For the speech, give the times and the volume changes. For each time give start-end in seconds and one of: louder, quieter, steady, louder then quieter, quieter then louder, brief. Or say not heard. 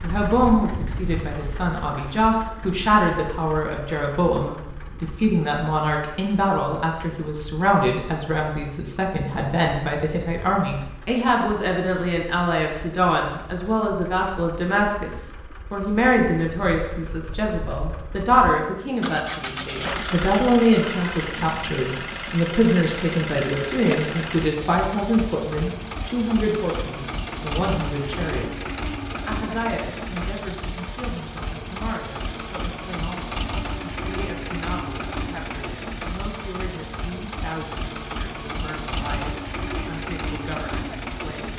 0.0-41.5 quieter.